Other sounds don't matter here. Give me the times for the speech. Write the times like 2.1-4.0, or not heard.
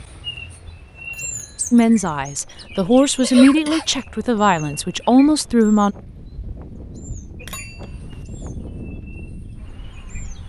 1.7-6.0.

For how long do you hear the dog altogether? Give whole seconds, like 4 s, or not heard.
not heard.